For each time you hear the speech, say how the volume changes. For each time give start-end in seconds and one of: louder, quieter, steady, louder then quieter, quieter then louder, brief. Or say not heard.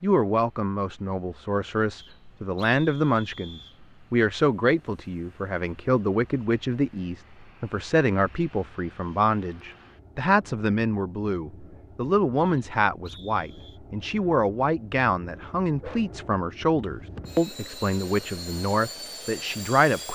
0.0-20.1 steady.